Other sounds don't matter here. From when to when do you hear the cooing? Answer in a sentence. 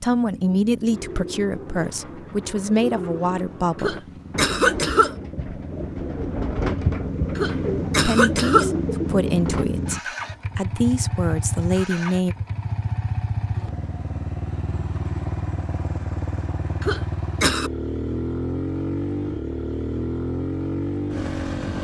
The cooing can be heard from 0.9 to 9.7 s.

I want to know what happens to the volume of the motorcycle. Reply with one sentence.
The loudness of the motorcycle goes up.